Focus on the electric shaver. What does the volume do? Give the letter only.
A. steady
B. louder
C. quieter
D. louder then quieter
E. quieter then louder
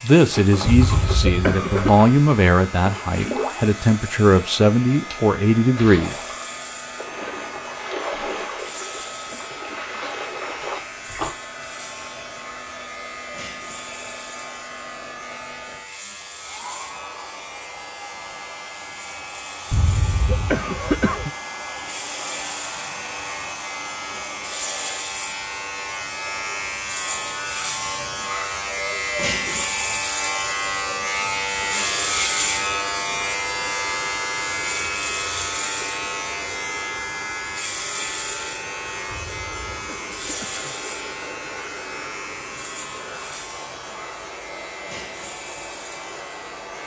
D.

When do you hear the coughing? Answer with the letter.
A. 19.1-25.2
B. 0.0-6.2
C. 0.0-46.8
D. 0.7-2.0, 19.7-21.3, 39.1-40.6
D.